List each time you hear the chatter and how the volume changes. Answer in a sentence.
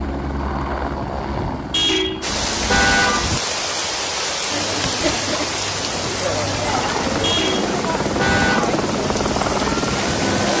You can hear the chatter from 4.5 to 10.5 s, at a steady volume.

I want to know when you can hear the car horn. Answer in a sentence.
You can hear the car horn from 1.7 to 3.4 s and from 7.2 to 8.7 s.